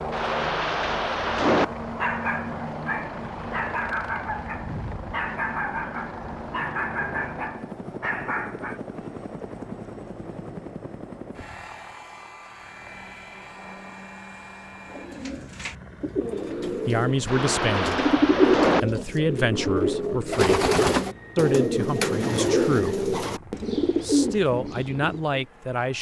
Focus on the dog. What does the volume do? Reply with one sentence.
The volume of the dog stays about the same.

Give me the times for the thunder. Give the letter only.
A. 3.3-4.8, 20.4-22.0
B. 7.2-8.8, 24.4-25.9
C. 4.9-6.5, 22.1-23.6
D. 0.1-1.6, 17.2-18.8
D.